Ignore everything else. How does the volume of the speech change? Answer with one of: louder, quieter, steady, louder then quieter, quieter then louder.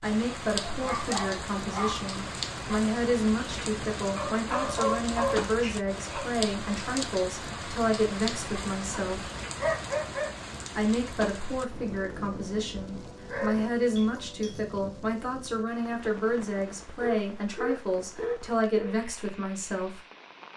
steady.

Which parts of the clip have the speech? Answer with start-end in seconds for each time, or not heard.
0.0-9.3, 10.8-20.0.